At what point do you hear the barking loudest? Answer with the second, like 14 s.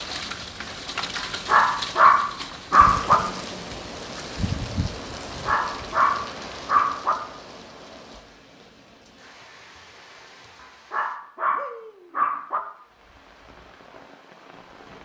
2 s.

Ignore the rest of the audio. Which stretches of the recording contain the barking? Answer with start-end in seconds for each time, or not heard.
1.1-3.2, 5.5-7.2, 10.6-12.6.